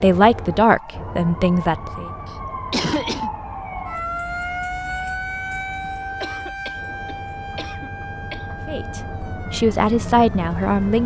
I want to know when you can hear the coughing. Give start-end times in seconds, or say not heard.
2.2-3.3, 6.2-8.7.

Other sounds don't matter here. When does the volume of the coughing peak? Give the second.
3 s.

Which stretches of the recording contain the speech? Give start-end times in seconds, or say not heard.
0.0-2.1, 8.7-11.0.